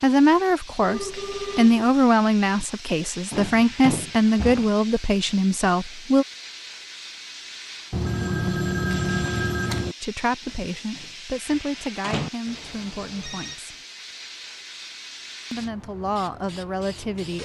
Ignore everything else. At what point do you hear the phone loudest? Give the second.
9 s.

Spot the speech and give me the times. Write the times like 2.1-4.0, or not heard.
0.0-6.2, 10.0-13.8, 15.5-17.4.